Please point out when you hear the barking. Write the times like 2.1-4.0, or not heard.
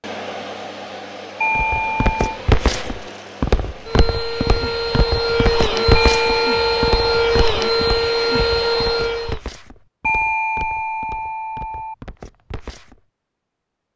not heard.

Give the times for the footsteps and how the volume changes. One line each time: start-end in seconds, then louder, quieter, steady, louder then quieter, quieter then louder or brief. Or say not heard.
1.6-12.9 quieter.